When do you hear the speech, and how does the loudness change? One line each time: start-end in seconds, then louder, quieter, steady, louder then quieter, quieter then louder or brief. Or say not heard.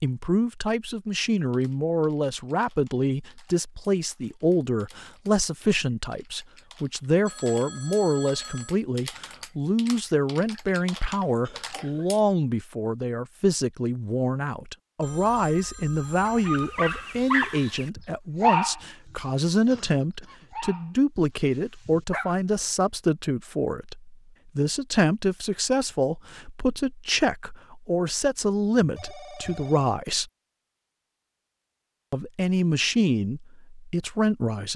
0.0-30.2 steady
32.1-34.7 brief.